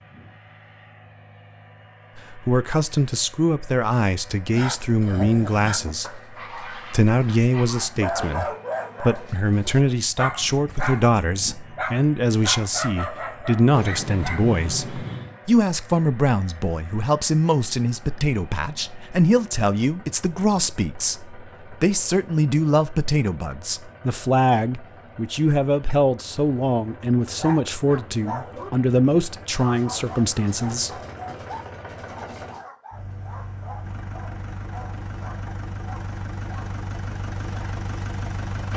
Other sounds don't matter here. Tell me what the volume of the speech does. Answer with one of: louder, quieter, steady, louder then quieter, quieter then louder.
steady.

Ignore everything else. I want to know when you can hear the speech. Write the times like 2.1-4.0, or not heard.
2.1-30.9.